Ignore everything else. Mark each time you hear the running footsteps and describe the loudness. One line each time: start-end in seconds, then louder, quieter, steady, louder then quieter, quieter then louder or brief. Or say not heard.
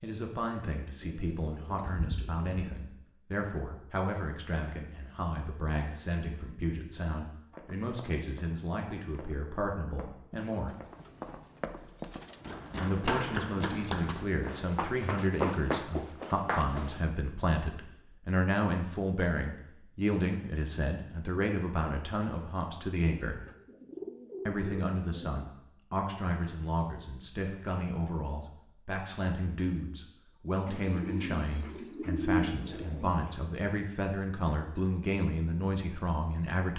7.5-17.0 louder.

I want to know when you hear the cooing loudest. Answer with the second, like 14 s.
32 s.